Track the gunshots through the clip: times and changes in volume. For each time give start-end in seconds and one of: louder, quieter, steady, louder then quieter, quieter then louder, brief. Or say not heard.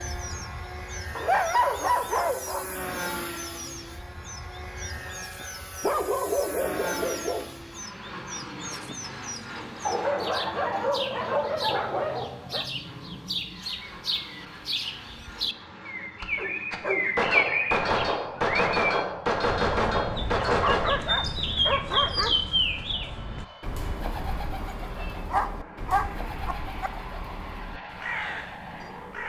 16.2-20.9 steady.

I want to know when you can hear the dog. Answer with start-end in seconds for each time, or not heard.
1.1-2.6, 5.8-7.5, 9.8-12.7, 16.4-17.1, 20.4-22.3, 25.3-26.9.